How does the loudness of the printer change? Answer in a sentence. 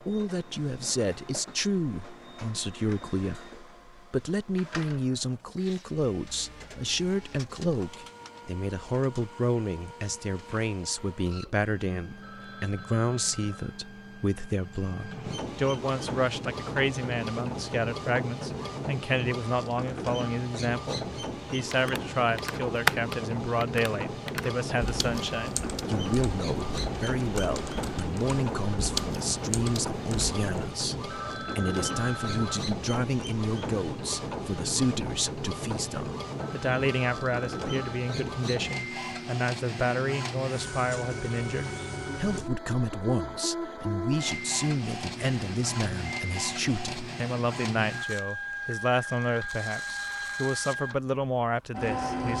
The loudness of the printer goes up.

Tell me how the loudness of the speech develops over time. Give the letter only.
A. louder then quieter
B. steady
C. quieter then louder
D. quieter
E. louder
B.